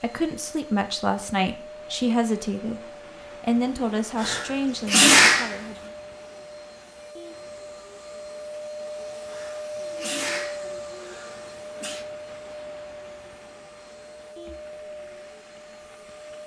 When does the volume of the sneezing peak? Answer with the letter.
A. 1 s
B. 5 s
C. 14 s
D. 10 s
B.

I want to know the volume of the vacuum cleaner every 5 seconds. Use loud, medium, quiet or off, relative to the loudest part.
medium, loud, loud, medium.